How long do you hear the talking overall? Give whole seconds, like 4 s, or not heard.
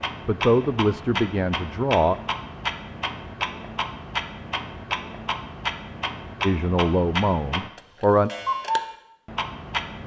4 s.